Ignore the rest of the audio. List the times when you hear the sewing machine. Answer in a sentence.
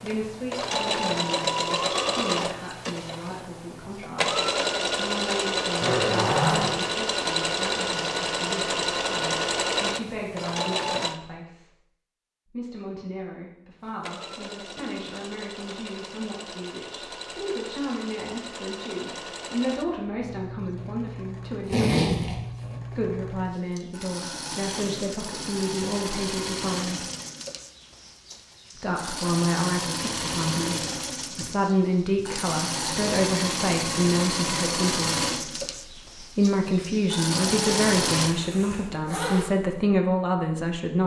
The sewing machine can be heard from 0.0 to 11.2 s and from 13.8 to 38.4 s.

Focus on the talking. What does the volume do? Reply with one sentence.
The loudness of the talking goes up.